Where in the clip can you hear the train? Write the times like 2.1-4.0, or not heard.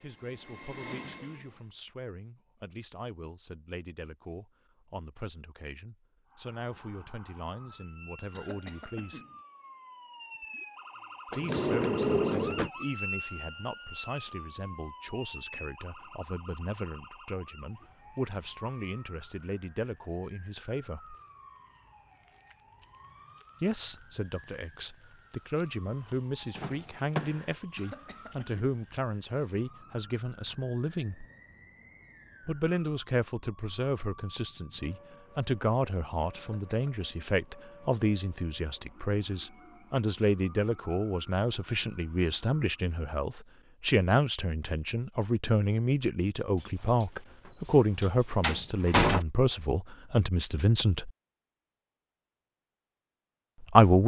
0.0-1.8.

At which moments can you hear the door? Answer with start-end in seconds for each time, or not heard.
11.3-12.7, 26.6-27.4, 46.6-49.2.